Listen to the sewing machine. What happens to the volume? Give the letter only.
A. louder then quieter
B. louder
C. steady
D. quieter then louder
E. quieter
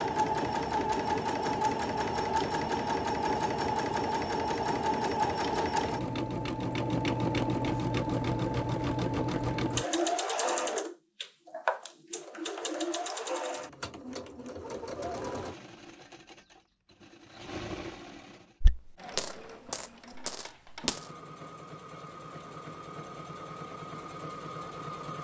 E.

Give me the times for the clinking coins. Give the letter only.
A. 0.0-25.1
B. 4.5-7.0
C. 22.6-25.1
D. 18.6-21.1
D.